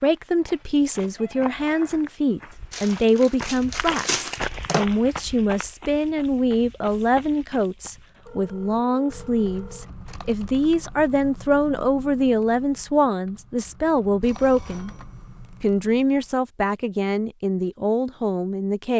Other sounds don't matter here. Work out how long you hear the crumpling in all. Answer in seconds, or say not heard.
2 s.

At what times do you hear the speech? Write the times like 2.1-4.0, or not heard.
0.0-14.9, 15.6-18.9.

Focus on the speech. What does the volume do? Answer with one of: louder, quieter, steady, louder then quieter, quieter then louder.
steady.